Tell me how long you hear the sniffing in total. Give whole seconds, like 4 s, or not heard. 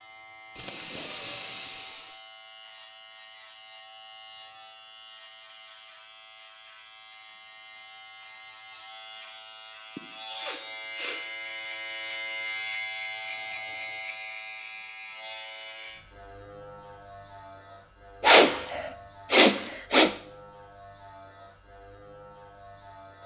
5 s.